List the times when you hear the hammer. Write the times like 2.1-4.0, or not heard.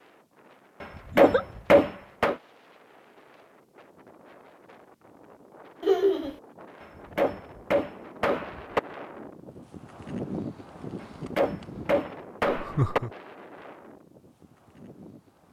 0.8-2.4, 6.8-8.8, 11.0-13.0.